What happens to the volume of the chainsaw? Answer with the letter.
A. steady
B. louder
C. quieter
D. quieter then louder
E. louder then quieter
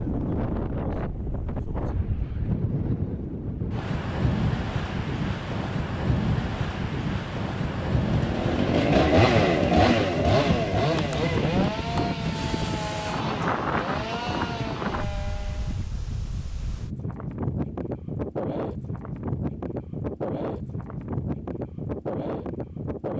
C.